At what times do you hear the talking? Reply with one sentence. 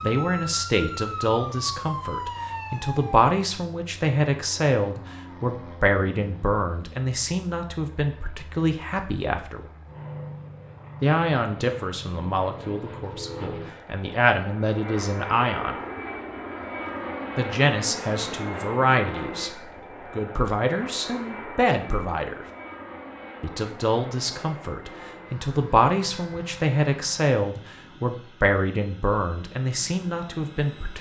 You can hear the talking from 0.0 to 9.6 s, from 11.0 to 15.8 s, from 17.4 to 19.5 s, from 20.1 to 22.4 s and from 23.4 to 30.9 s.